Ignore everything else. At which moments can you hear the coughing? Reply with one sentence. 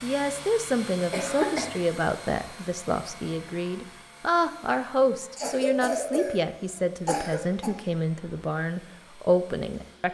The coughing can be heard from 1.1 to 1.8 s and from 5.3 to 7.7 s.